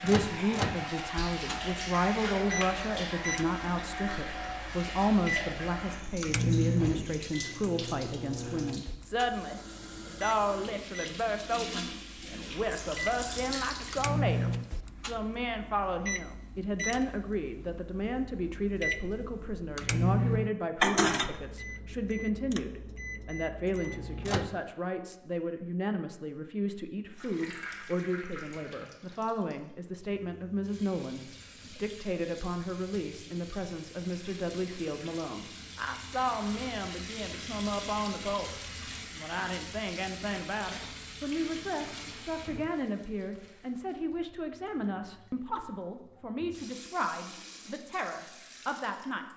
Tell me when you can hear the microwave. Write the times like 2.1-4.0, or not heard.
0.0-24.6.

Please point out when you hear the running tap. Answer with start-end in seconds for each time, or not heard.
0.0-14.6, 27.1-49.3.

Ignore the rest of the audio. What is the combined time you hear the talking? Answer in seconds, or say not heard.
49 s.